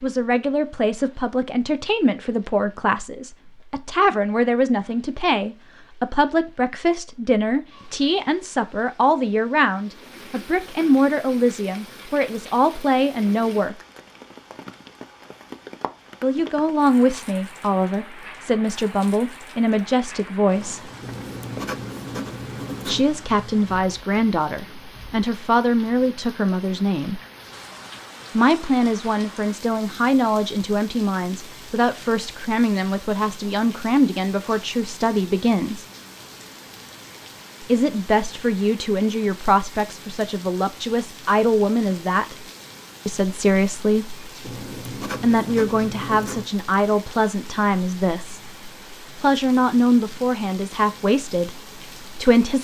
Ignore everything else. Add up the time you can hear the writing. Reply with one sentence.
You can hear the writing for 4 seconds altogether.